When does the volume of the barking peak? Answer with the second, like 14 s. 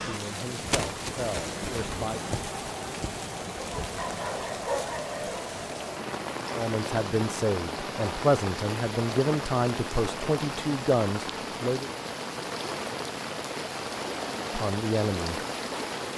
5 s.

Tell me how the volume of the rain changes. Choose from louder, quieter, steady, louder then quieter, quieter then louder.
steady.